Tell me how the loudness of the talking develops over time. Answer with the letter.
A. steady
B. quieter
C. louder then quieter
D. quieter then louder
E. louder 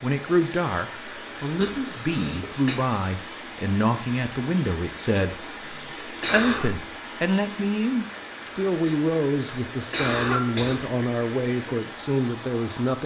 A.